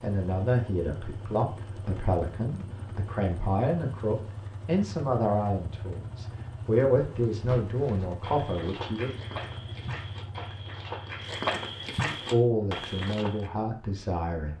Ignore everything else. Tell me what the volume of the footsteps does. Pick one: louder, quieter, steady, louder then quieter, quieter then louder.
louder.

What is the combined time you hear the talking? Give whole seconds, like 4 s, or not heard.
12 s.